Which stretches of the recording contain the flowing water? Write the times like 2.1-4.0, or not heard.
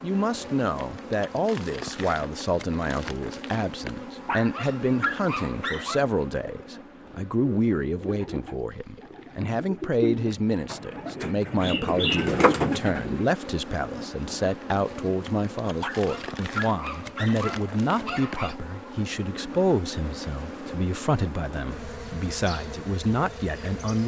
not heard.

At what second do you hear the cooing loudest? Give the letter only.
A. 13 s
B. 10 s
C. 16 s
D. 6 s
A.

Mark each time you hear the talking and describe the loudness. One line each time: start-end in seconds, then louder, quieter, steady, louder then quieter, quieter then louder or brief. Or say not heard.
0.0-24.0 steady.